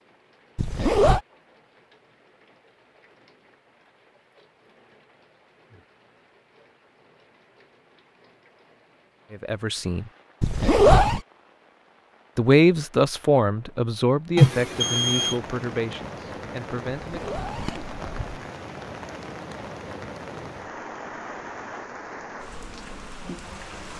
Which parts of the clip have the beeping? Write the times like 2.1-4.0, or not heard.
14.3-15.3.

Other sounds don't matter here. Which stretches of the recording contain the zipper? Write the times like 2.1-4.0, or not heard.
0.6-1.2, 10.4-11.2, 17.1-18.4.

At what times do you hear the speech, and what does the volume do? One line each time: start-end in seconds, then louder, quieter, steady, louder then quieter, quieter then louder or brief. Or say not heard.
9.3-10.1 brief
12.3-17.4 quieter.